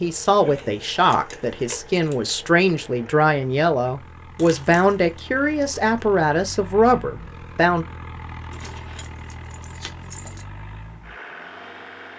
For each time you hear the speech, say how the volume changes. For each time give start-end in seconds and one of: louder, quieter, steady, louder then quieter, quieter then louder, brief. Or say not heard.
0.0-7.8 steady.